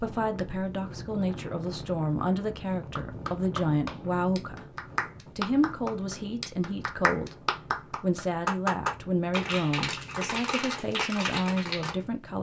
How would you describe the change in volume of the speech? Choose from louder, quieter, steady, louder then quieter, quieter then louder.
steady.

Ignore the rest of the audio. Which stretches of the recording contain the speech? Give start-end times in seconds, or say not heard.
0.0-12.3.